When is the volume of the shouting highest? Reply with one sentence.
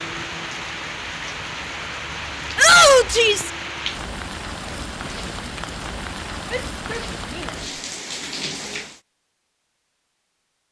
The loudest moment of the shouting is at 3 seconds.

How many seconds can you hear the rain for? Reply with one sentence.
The rain can be heard for 9 seconds in total.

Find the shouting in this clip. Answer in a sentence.
The shouting can be heard from 2.5 to 3.5 s, from 6.5 to 7.5 s and from 8.4 to 8.8 s.